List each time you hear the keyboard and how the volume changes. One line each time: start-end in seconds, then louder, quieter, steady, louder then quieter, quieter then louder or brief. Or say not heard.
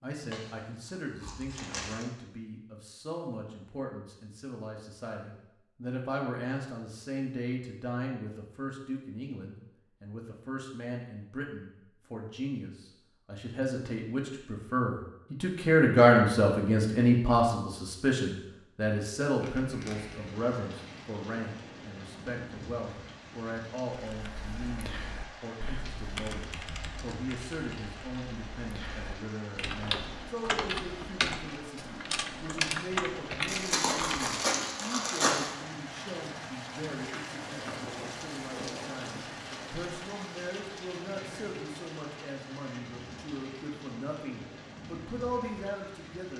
23.9-34.4 louder.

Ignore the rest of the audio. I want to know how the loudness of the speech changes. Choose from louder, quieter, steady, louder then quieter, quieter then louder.
louder then quieter.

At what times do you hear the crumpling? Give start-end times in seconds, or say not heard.
0.2-2.1, 19.4-20.3, 33.5-35.5.